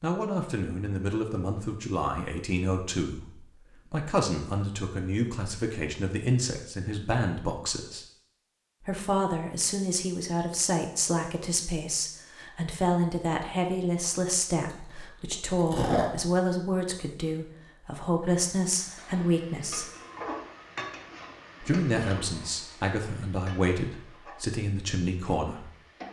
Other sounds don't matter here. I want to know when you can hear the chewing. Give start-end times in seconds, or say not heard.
14.7-16.3.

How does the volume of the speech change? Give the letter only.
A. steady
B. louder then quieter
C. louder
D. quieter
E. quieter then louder
A.